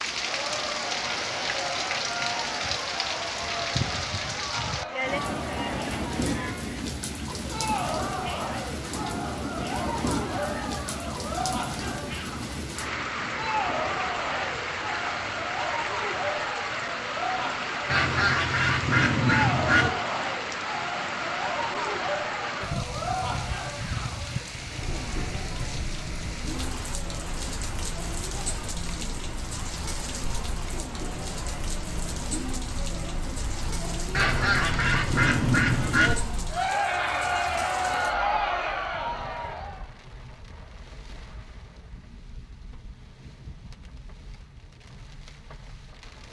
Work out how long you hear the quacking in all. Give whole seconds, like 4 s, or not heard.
4 s.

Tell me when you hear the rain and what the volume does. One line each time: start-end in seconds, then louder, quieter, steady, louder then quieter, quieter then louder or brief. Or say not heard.
0.0-46.2 quieter.